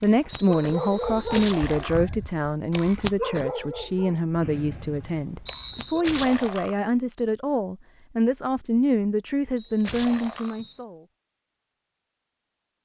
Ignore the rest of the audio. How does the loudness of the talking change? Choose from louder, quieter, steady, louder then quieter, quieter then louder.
steady.